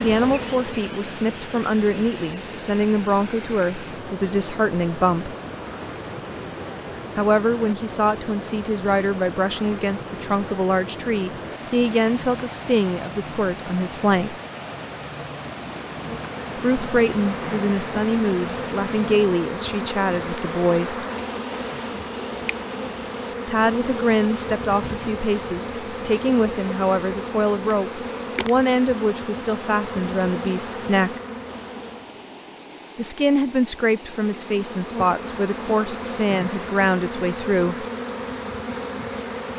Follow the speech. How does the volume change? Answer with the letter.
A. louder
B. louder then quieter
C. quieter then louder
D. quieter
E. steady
E.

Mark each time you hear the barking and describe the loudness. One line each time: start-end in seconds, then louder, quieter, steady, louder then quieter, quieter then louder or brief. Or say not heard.
not heard.